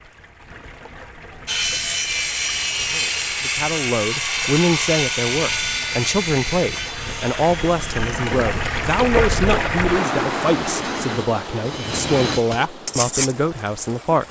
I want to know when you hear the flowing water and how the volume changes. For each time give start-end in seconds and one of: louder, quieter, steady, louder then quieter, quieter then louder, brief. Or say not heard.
0.0-14.2 louder then quieter.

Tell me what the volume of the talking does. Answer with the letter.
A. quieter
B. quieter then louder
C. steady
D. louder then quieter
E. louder
C.